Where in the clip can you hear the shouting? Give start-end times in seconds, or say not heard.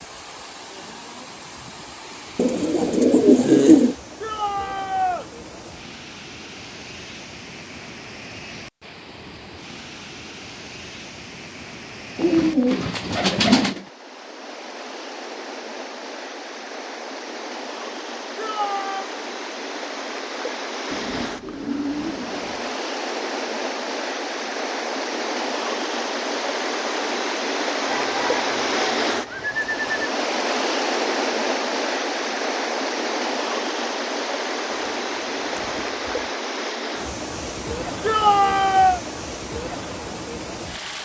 4.2-5.2, 18.4-19.1, 38.0-39.0.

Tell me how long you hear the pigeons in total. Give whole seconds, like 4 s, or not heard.
9 s.